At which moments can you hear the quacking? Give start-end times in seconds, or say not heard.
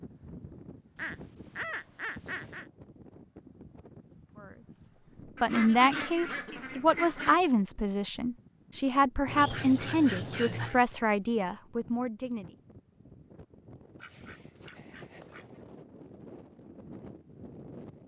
0.9-2.6, 5.3-7.4, 9.2-10.8, 14.0-15.4.